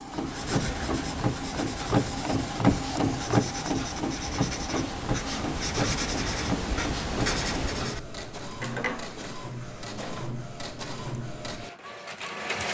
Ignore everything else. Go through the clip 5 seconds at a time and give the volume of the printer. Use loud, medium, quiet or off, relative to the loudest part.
loud, medium, medium.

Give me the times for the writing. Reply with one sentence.
You can hear the writing from 0.0 to 8.0 s.